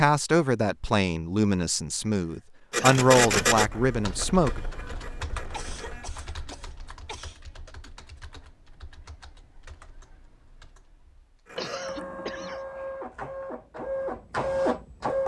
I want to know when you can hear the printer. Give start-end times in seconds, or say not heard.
2.7-6.1, 11.4-15.2.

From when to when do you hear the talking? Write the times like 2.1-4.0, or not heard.
0.0-4.6.